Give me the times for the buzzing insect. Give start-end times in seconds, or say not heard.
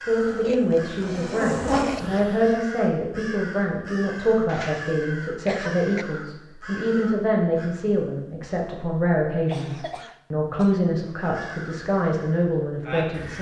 0.0-2.5.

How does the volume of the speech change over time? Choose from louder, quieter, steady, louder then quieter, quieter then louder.
steady.